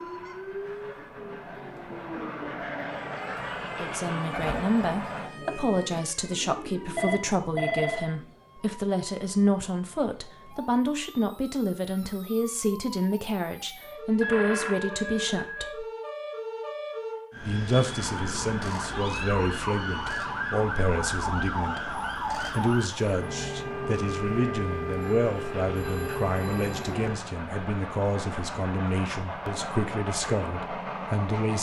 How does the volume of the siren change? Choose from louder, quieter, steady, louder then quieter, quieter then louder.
quieter then louder.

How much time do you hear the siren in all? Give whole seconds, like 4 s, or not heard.
27 s.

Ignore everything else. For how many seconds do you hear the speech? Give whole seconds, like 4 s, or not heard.
26 s.